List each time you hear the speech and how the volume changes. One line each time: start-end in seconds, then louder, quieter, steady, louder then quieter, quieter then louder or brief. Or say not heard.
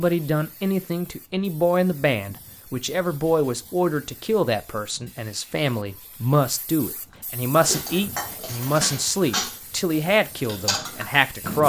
0.0-11.6 steady.